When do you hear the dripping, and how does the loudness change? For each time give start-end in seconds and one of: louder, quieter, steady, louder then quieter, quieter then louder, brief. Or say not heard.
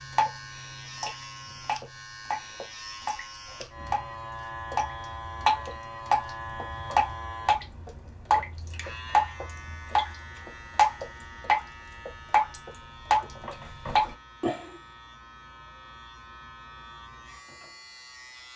0.0-14.6 louder.